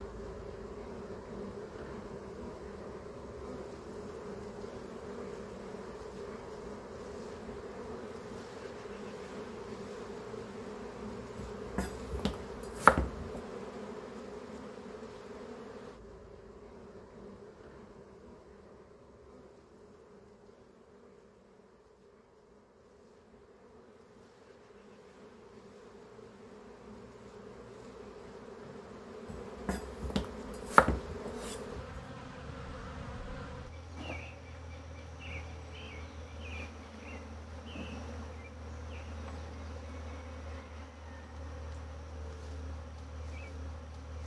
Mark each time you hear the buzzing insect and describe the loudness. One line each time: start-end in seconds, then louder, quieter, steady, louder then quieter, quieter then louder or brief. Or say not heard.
0.0-44.2 quieter then louder.